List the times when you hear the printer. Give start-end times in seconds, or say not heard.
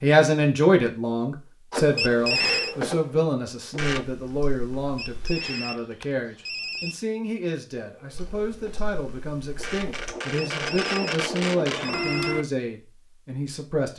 1.7-4.0, 7.8-12.4.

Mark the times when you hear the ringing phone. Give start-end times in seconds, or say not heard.
1.9-2.8, 5.0-7.0, 10.3-12.3.